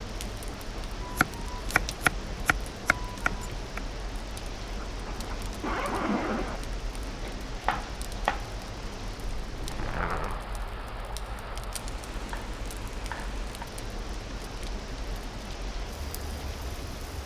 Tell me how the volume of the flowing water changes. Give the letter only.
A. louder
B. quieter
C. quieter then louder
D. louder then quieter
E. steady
E.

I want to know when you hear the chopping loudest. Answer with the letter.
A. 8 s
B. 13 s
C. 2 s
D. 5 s
C.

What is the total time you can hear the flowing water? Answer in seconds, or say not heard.
17 s.